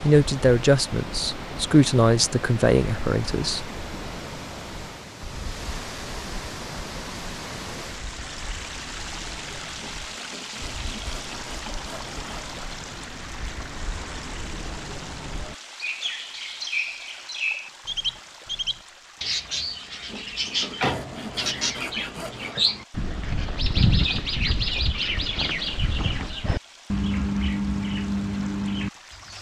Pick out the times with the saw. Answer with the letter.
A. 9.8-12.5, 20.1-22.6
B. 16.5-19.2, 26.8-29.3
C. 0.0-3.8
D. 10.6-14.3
A.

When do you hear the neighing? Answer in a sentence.
The neighing can't be heard in this clip.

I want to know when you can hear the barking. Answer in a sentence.
You can't hear the barking here.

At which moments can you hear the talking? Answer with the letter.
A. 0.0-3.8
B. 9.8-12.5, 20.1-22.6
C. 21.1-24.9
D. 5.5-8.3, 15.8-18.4
A.